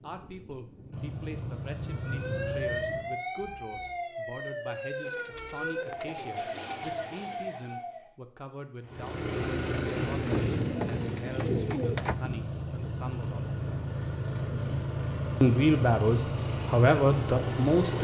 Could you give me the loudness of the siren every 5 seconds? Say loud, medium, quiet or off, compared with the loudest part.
loud, loud, off, off.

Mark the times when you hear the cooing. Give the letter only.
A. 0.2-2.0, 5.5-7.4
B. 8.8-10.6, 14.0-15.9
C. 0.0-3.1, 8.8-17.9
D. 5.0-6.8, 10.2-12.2
D.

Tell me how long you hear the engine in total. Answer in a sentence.
The engine can be heard for 12 seconds in total.